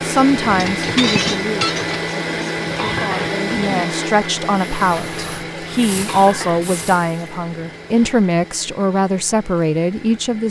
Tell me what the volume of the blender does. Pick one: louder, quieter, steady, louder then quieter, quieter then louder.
quieter.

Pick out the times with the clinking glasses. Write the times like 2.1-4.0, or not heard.
0.6-2.1.